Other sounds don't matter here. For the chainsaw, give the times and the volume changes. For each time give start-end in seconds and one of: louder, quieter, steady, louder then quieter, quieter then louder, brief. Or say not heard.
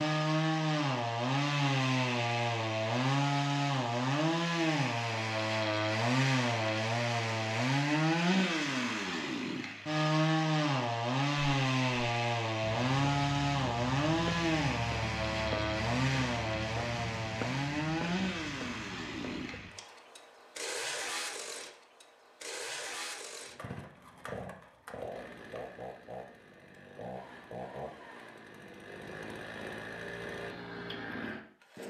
0.0-31.8 quieter.